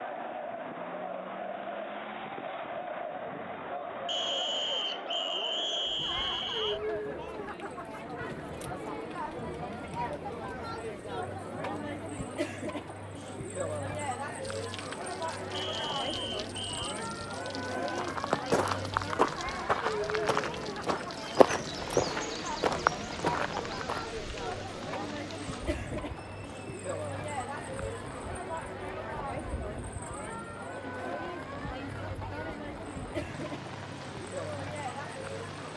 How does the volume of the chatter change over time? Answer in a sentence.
The loudness of the chatter stays about the same.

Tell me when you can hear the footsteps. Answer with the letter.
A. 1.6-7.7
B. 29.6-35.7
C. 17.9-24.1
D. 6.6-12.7
C.